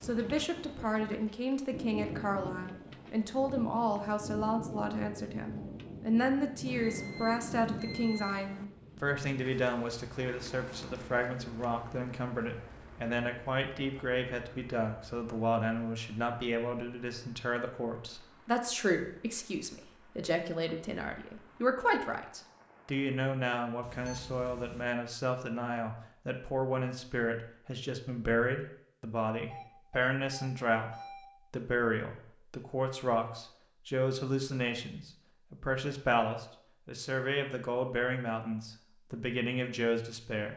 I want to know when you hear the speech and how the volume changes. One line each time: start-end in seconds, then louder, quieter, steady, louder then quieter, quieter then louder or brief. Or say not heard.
0.0-40.5 steady.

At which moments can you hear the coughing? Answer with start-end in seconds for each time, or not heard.
not heard.